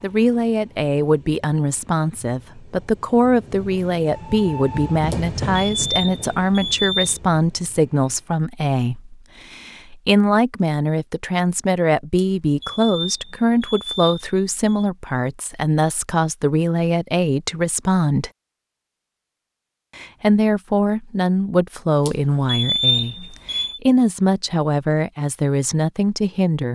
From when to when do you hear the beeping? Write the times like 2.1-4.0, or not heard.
5.1-7.2, 12.2-14.8, 22.1-23.8.